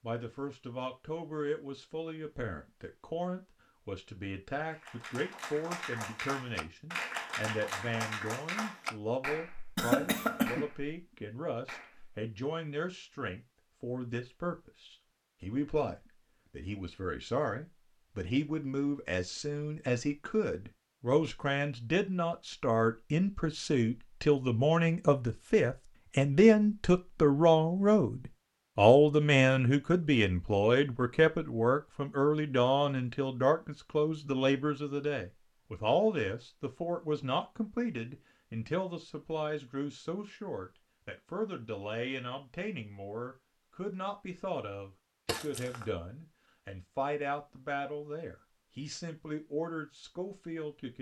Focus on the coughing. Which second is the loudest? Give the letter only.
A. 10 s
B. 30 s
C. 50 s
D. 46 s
A.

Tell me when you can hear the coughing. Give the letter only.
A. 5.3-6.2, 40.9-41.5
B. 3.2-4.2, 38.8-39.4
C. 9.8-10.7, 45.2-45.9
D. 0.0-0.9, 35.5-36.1
C.